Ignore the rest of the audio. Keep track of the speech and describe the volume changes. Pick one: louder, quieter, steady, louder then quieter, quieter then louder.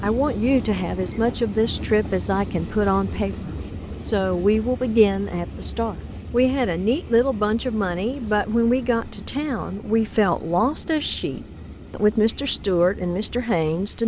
steady.